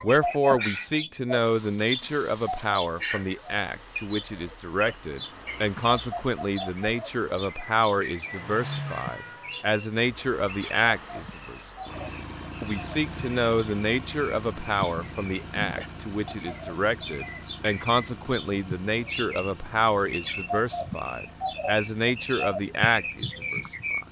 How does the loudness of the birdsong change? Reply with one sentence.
The volume of the birdsong goes down, then up.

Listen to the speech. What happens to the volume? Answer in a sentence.
The loudness of the speech stays about the same.